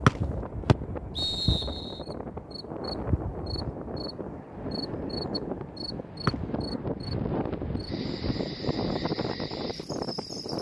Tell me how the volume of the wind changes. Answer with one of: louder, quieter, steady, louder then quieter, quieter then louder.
louder.